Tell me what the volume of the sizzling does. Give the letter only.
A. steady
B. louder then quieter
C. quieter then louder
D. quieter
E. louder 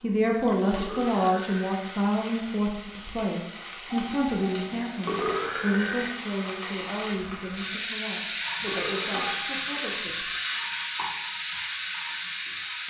E.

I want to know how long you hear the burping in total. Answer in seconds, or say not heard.
3 s.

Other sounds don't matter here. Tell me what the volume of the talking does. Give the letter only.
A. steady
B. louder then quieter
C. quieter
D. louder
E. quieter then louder
C.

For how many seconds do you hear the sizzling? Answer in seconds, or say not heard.
13 s.